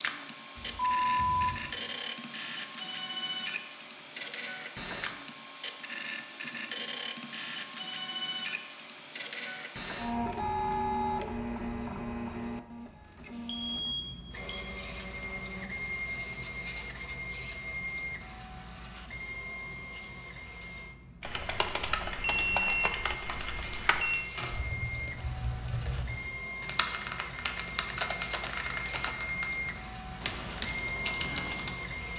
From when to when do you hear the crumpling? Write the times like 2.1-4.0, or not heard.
23.7-24.5.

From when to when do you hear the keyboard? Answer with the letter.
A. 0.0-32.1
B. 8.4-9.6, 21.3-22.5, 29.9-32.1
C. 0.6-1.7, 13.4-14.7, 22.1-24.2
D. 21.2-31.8
D.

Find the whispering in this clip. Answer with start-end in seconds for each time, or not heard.
not heard.